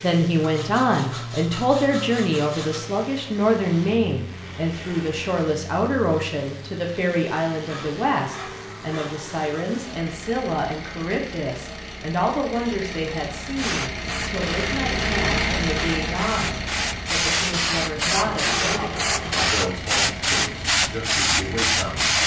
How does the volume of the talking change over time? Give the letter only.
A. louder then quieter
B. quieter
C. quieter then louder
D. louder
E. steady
B.